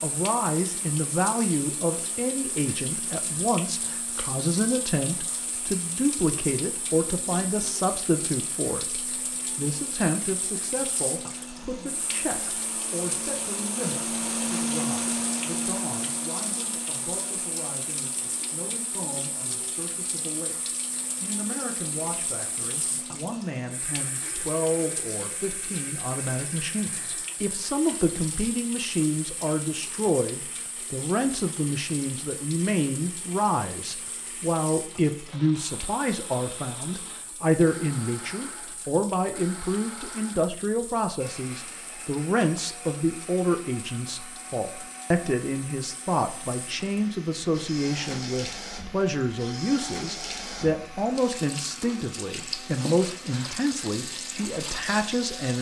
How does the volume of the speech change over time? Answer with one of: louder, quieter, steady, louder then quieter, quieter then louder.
quieter then louder.